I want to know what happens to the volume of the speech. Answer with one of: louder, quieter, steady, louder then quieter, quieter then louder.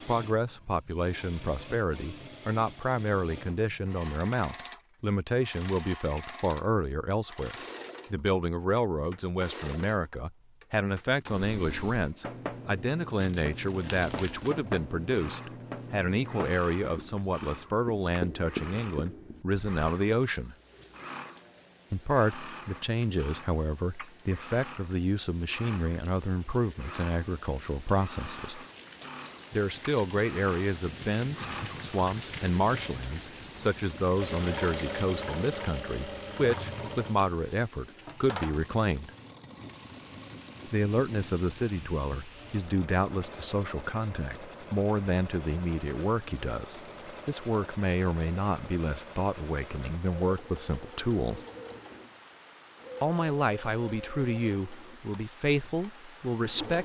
steady.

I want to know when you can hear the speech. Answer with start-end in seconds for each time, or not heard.
0.1-20.6, 21.9-28.6, 29.5-39.1, 40.6-51.5, 53.0-56.8.